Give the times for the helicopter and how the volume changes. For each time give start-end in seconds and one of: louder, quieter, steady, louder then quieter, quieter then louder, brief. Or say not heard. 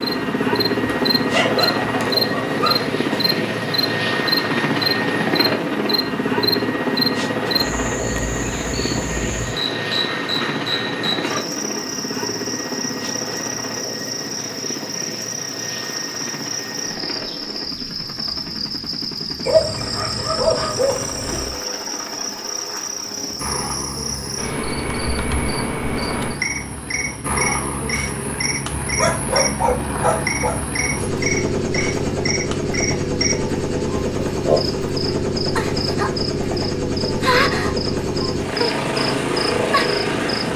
0.0-40.5 quieter then louder.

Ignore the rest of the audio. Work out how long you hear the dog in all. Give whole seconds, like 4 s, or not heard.
6 s.